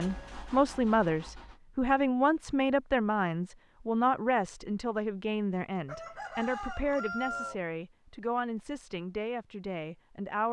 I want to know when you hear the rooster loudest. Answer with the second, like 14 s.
7 s.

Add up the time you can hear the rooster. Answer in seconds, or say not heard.
2 s.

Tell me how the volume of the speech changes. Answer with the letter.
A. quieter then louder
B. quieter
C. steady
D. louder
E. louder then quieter
B.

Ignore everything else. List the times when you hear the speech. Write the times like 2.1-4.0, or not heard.
0.0-10.4.